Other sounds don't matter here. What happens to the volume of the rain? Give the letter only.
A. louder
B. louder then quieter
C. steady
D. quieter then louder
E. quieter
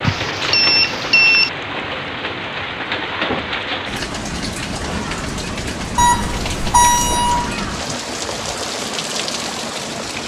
C.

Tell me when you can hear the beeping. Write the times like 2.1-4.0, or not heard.
0.0-1.5, 6.0-7.5.